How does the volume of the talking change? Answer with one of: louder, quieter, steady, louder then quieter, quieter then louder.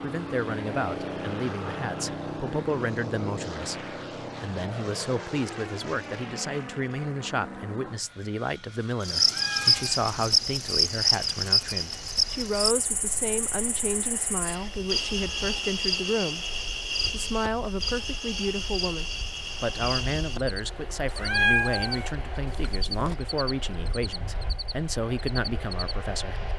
steady.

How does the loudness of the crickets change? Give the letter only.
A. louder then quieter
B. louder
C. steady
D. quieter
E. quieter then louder
D.